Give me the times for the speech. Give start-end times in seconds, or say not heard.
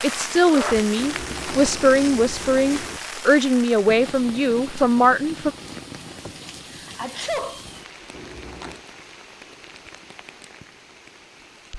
0.0-5.5.